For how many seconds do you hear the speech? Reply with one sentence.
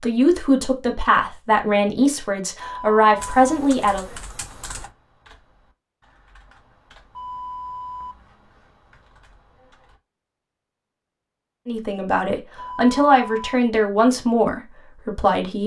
The speech can be heard for 8 seconds in total.